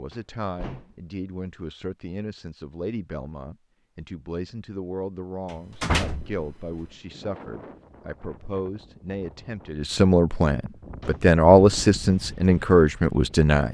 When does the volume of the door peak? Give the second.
6 s.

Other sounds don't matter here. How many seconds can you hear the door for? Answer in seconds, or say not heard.
3 s.